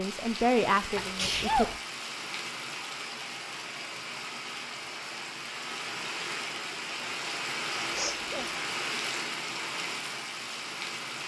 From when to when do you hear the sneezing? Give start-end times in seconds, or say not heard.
0.9-1.8, 8.0-8.6.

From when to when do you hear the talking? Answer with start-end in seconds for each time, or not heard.
0.0-1.8.